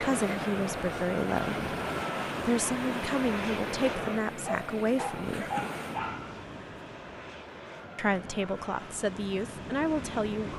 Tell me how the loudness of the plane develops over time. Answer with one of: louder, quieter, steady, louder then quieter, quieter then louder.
quieter.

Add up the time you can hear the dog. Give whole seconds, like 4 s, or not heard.
2 s.